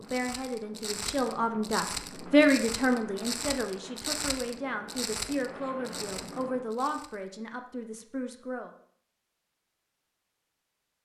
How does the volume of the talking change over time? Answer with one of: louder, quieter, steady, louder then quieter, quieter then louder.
louder then quieter.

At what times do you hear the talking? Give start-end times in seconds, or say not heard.
0.0-8.7.